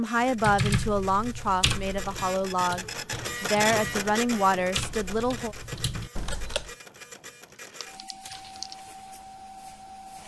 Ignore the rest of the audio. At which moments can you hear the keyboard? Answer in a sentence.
The keyboard can be heard from 0.3 to 6.7 s.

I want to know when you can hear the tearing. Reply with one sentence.
You can hear the tearing from 7.7 to 8.8 s.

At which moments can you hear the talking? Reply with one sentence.
The talking can be heard from 0.0 to 5.5 s.